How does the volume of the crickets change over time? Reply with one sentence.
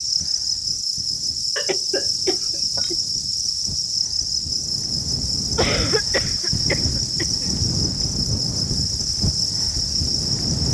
The loudness of the crickets stays about the same.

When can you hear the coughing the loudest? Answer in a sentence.
The volume of the coughing peaks at 6 seconds.